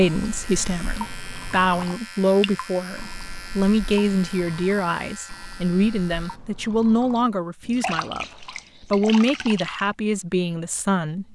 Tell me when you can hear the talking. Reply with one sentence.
The talking can be heard from 0.0 to 11.3 s.